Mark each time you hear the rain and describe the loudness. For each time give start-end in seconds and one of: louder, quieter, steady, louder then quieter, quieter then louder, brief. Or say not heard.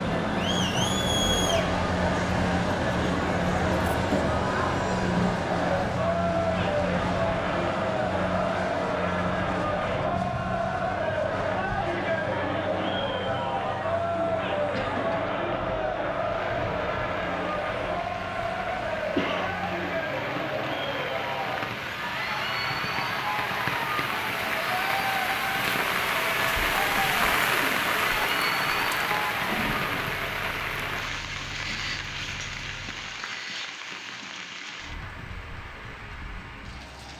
16.1-37.1 louder then quieter.